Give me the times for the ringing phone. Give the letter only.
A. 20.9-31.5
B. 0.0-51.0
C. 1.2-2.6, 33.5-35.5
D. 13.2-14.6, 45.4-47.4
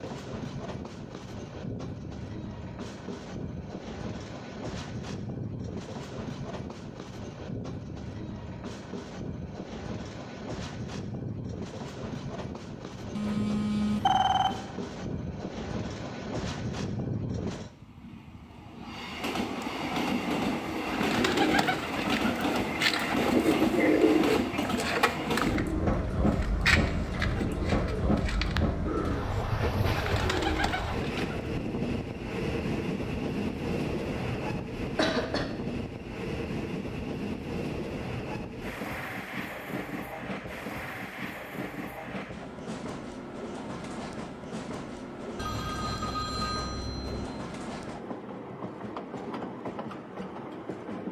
D.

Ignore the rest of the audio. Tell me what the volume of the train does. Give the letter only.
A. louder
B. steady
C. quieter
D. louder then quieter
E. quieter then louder
D.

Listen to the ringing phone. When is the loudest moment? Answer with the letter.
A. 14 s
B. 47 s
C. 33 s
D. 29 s
A.